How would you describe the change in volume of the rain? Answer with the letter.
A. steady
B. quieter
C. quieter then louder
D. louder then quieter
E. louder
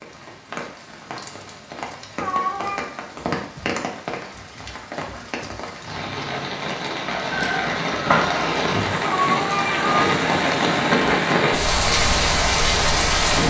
E.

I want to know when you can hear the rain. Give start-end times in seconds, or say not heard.
0.0-13.4.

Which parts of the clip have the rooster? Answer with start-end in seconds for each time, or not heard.
7.0-9.0.